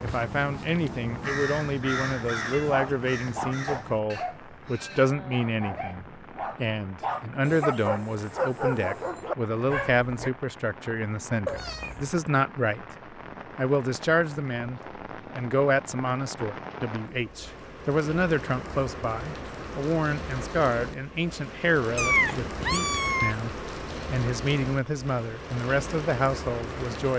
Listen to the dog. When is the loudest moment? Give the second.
9 s.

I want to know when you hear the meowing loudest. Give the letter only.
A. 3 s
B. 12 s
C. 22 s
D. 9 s
C.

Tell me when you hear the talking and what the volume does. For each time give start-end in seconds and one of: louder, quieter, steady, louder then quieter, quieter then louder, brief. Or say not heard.
0.0-12.8 steady
13.6-27.1 steady.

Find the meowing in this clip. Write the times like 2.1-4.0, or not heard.
2.5-3.5, 11.4-12.1, 21.9-23.4.